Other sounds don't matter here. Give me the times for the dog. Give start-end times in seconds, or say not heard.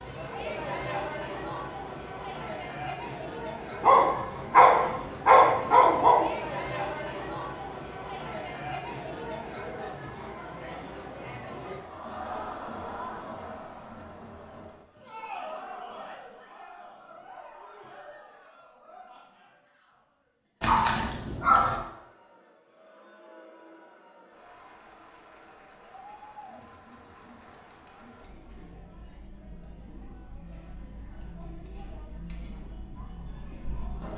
3.8-6.2, 20.6-21.8.